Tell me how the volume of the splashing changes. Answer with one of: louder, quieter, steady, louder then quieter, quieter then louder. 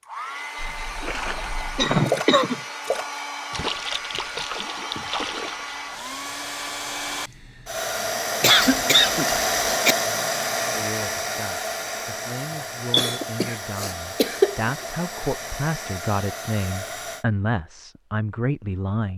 louder then quieter.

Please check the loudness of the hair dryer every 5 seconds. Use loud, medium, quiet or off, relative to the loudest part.
medium, loud, loud, medium.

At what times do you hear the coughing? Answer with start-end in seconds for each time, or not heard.
1.8-2.6, 8.4-9.9, 12.9-14.8.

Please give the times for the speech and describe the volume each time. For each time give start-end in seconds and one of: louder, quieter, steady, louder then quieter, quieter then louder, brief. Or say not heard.
10.7-19.1 louder.